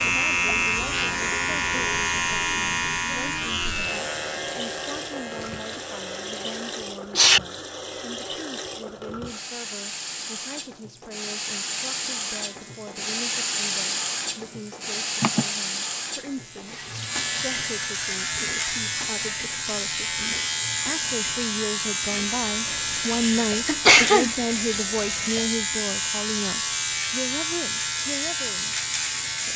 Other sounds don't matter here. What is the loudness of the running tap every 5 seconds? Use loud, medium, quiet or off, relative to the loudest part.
medium, medium, loud, loud, medium, medium.